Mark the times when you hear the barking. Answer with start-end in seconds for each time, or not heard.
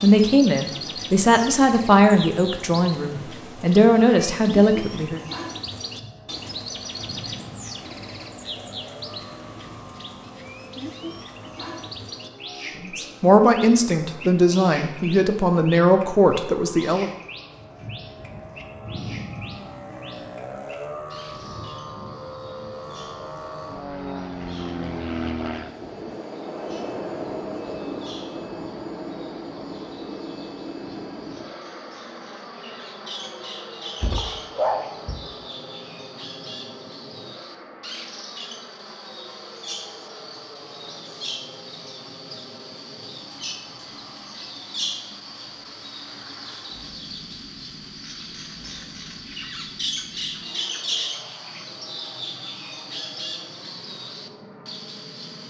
34.0-35.1.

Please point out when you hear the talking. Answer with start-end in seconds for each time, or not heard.
0.0-5.2, 12.8-17.1.